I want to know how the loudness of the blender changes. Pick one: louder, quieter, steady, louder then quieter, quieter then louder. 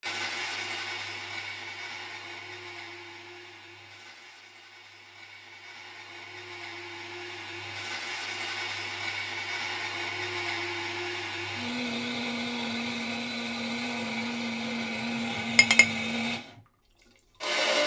quieter then louder.